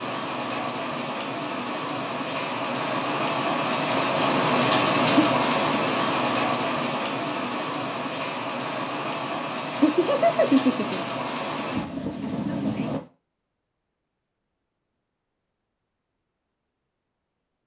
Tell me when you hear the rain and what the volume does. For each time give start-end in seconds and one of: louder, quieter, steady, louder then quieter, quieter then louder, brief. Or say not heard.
0.0-13.0 louder then quieter.